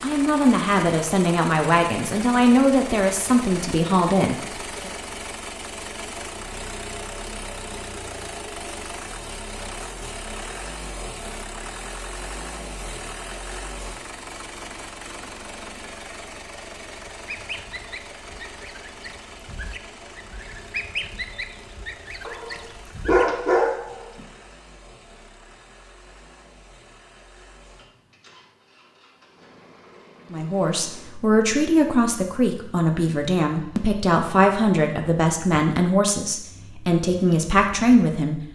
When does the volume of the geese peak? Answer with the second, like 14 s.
21 s.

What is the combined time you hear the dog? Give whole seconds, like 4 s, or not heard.
2 s.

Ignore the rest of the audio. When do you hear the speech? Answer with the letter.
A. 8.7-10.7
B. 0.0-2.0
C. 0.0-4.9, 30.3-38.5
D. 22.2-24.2
C.